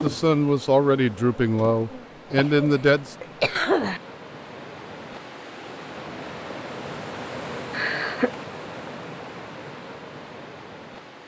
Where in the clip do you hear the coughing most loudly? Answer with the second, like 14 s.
4 s.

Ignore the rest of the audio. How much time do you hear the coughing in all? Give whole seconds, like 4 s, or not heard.
2 s.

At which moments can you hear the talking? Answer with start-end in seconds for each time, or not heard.
0.0-3.1.